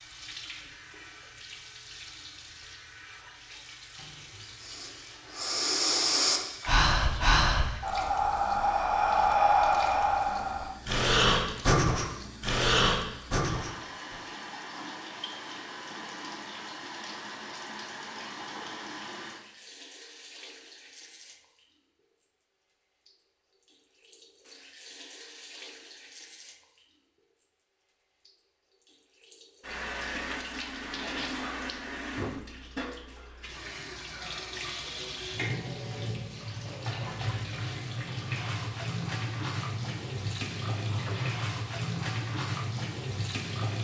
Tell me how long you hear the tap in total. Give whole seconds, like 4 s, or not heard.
44 s.